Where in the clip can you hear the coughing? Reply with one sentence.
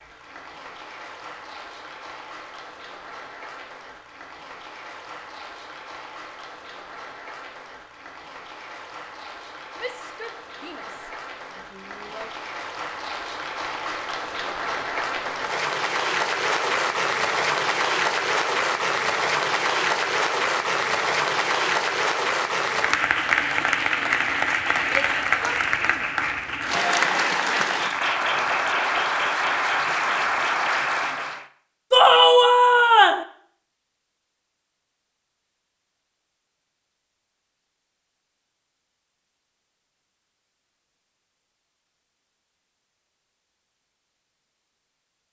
You can't hear the coughing here.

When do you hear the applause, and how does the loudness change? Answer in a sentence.
You can hear the applause from 0.0 to 31.4 s, getting louder.